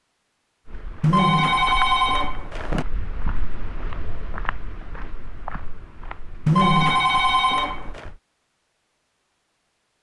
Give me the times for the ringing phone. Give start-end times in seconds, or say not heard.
1.0-2.9, 6.5-8.1.